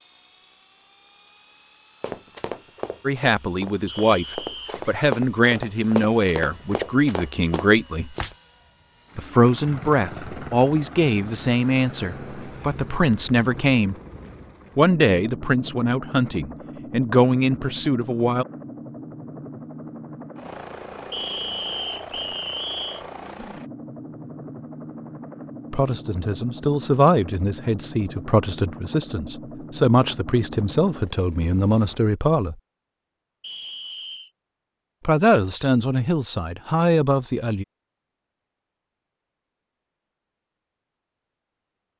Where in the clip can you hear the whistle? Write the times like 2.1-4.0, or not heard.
3.9-4.8, 21.1-23.1, 33.4-34.3.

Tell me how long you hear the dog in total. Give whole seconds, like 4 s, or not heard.
not heard.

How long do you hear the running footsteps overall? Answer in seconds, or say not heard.
6 s.